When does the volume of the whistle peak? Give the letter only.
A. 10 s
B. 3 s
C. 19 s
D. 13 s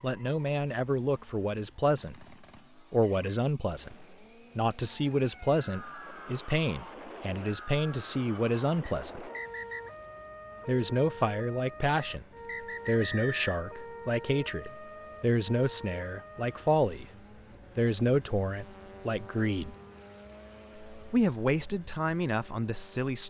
D.